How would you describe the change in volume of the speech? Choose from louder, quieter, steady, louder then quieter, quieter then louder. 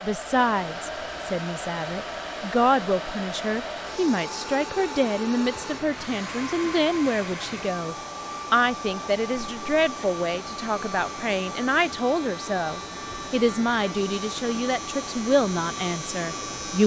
steady.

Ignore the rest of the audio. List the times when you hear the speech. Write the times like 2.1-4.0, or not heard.
0.0-16.8.